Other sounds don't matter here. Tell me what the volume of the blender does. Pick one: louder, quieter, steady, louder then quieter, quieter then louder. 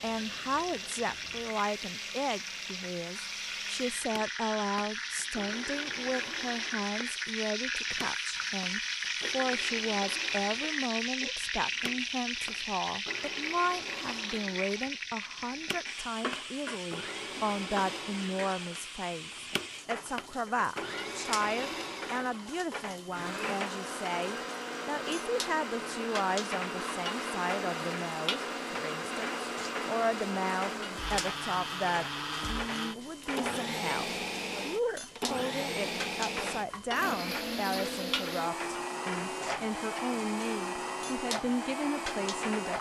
louder.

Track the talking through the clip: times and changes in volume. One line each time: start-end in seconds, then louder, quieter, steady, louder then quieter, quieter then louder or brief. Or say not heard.
0.0-42.7 steady.